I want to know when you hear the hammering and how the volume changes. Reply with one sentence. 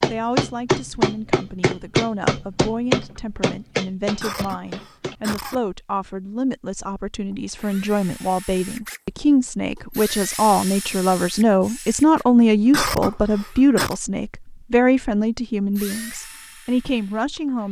The hammering can be heard from 0.0 to 5.2 s, getting quieter.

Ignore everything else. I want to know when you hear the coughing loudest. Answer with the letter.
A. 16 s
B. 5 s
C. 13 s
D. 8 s
C.